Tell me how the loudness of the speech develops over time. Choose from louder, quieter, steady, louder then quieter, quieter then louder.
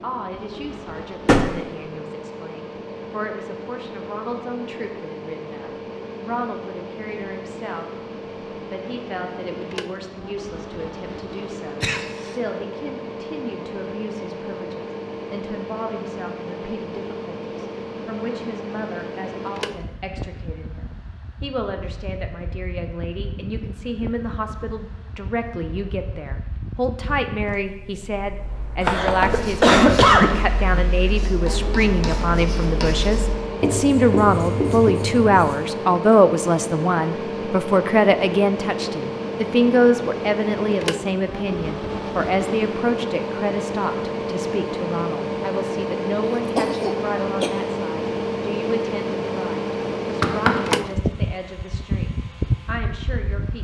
louder then quieter.